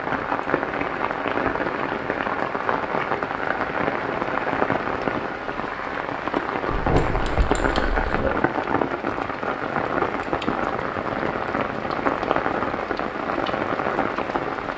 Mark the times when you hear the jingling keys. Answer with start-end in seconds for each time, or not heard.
6.7-8.3.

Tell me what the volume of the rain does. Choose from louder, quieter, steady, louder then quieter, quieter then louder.
steady.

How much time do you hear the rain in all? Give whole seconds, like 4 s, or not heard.
15 s.